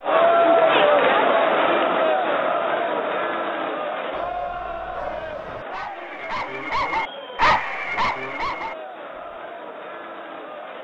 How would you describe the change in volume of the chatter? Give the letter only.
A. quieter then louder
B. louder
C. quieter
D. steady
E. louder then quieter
C.